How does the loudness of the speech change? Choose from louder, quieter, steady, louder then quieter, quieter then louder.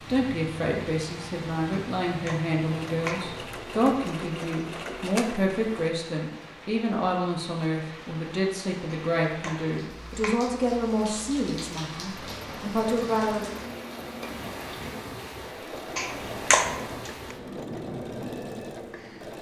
steady.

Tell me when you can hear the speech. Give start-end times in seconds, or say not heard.
0.1-13.5.